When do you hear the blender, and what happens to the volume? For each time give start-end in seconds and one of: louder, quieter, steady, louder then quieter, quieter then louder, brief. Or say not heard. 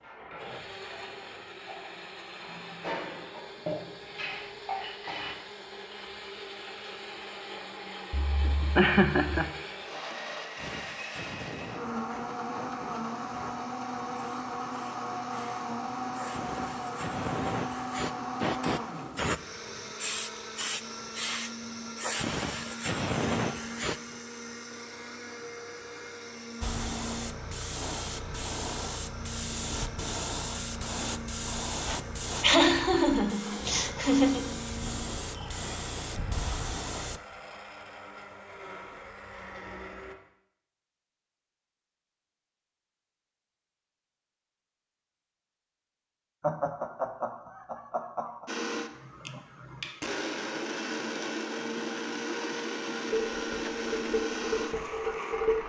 0.3-40.1 louder then quieter
48.5-55.6 louder.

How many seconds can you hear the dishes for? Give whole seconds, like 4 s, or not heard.
8 s.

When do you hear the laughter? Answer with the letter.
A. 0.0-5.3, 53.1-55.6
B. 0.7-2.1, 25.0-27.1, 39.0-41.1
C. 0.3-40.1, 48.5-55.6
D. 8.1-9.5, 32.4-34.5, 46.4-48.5
D.